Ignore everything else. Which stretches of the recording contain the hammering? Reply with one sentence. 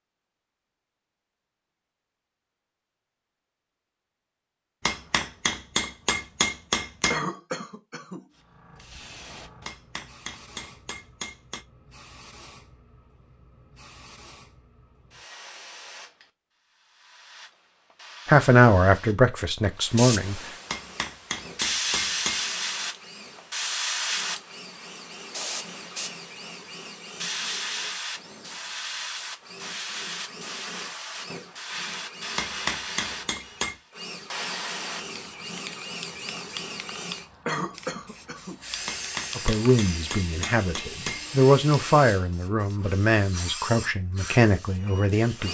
You can hear the hammering from 4.8 to 7.2 s, from 9.7 to 11.7 s, from 20.7 to 22.4 s, from 32.4 to 33.8 s and from 38.9 to 41.2 s.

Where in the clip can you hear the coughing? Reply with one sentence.
The coughing can be heard from 7.1 to 8.2 s and from 37.5 to 38.6 s.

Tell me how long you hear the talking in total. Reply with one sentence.
The talking can be heard for 8 seconds in total.